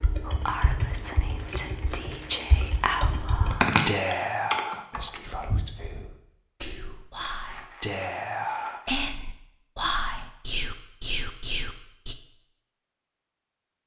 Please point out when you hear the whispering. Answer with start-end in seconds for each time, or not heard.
0.2-12.2.